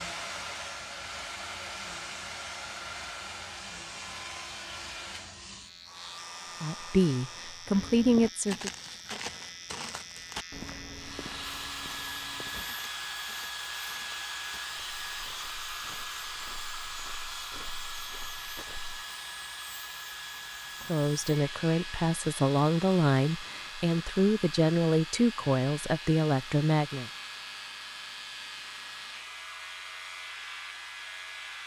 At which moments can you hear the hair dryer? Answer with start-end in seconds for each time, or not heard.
0.0-7.8, 10.9-31.6.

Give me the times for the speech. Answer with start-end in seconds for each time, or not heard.
6.6-8.7, 20.9-27.1.